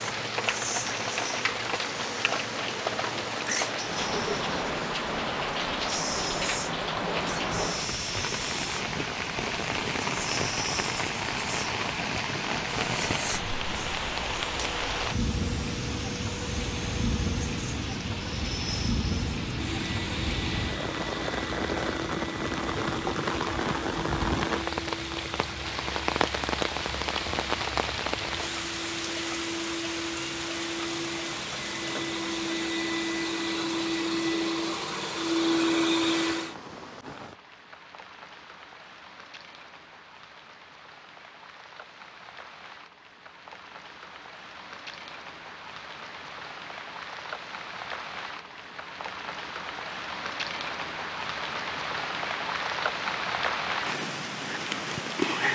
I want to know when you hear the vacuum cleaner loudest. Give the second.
36 s.